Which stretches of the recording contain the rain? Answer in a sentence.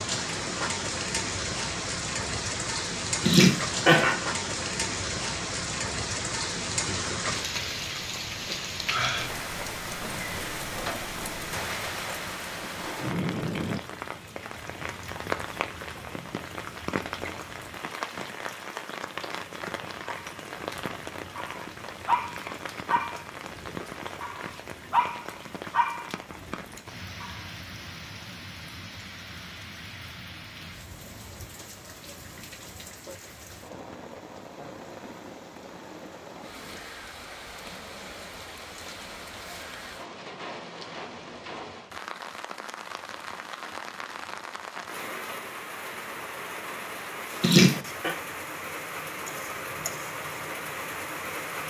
You can hear the rain from 0.0 to 51.6 s.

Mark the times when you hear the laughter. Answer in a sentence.
The laughter can be heard from 3.2 to 4.2 s and from 47.4 to 48.1 s.